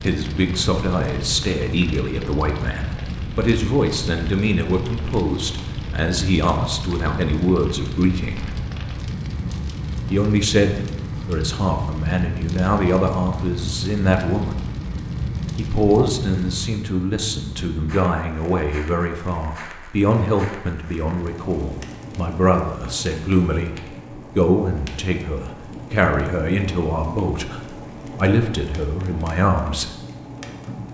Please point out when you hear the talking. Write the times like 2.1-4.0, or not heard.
0.0-8.5, 10.1-14.6, 15.6-29.9.